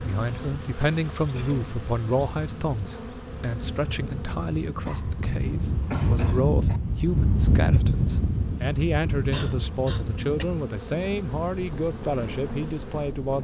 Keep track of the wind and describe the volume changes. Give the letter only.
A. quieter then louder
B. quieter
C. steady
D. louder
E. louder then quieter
E.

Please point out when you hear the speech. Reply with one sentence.
You can hear the speech from 0.0 to 13.3 s.